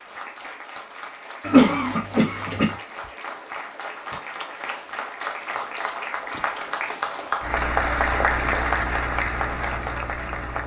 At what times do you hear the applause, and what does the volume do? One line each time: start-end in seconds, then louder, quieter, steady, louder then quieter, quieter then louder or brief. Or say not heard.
0.0-10.6 louder.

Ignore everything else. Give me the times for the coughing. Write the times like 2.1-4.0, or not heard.
1.4-2.8.